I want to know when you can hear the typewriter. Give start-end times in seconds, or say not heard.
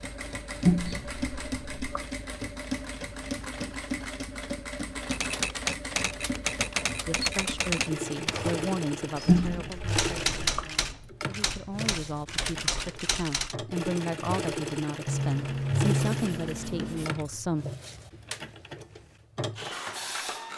5.1-13.6.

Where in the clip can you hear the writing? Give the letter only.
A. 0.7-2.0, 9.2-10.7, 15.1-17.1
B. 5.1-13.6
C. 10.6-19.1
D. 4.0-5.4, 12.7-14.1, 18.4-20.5
A.